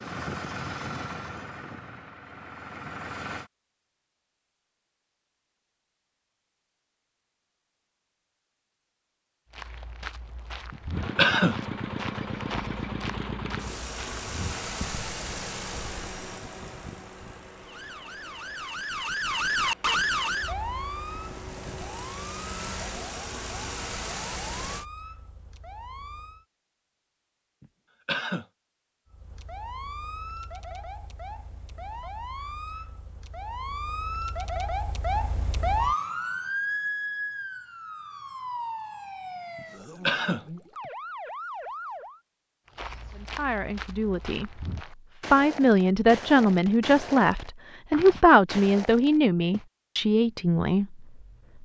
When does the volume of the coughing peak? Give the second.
11 s.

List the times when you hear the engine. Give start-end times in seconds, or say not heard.
0.0-3.5, 10.9-24.9.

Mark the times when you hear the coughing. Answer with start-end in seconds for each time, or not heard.
10.7-11.6, 27.6-28.4, 39.5-40.5.